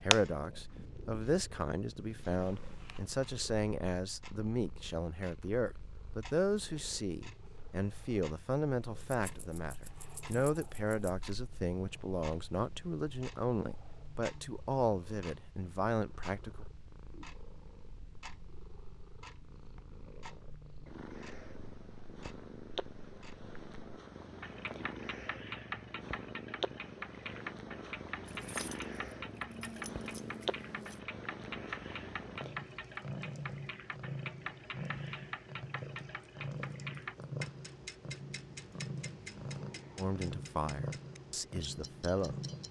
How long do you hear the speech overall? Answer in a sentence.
The speech can be heard for 19 seconds in total.